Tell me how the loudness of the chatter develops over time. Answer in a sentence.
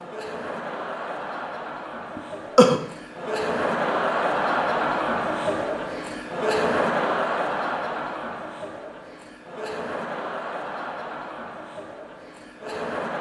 The volume of the chatter goes up, then down.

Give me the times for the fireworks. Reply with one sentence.
You can't hear the fireworks here.